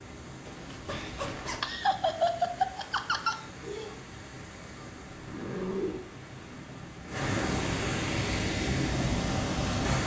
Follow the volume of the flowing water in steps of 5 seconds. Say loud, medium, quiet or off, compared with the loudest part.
quiet, loud.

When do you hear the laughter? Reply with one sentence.
You can hear the laughter from 1.6 to 4.0 s.